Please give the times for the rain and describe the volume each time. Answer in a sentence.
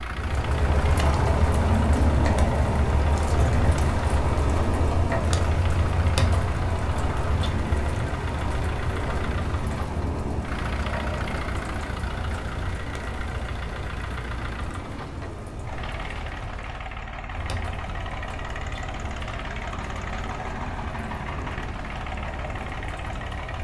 The rain can be heard from 0.0 to 23.5 s, getting quieter.